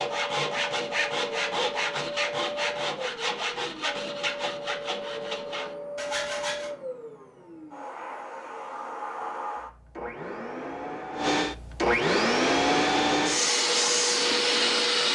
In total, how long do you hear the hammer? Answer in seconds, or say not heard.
not heard.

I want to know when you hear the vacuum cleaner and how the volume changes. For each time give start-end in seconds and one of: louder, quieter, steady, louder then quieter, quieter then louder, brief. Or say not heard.
0.0-15.0 louder.